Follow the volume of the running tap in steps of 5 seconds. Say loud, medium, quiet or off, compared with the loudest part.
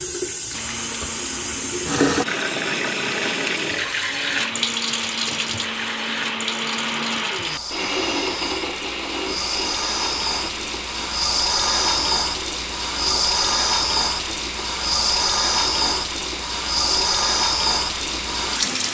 loud, medium, loud, loud.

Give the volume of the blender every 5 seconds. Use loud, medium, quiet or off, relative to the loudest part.
medium, loud, medium, medium.